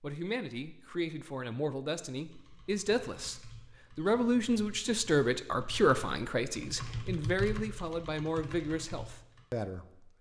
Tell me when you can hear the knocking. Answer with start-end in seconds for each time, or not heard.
not heard.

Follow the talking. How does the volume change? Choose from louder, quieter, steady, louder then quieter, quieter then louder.
louder then quieter.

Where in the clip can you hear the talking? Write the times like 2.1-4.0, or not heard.
0.0-10.1.